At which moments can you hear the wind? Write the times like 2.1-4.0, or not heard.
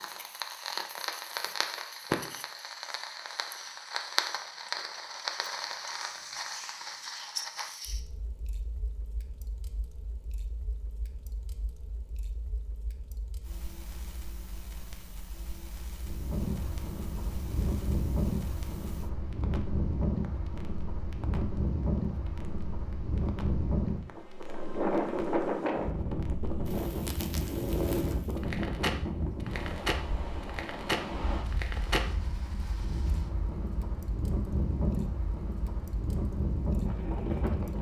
16.0-37.7.